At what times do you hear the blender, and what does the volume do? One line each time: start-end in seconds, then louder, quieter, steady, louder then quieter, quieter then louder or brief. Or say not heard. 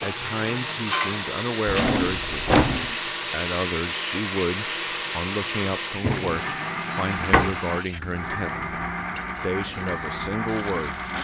0.0-11.1 steady.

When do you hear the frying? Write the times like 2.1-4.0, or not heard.
0.0-11.1.